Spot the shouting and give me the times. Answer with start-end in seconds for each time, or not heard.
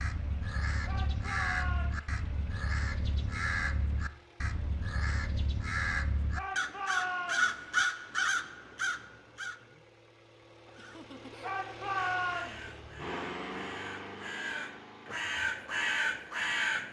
0.8-2.1, 6.3-7.5, 11.4-12.7.